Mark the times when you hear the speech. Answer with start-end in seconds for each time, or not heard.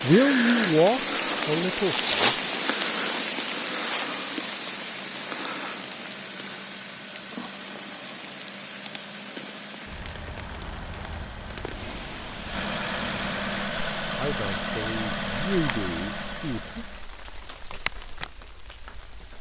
0.0-2.4, 14.2-16.7.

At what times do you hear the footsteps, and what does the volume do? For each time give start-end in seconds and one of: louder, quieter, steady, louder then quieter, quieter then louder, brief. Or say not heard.
not heard.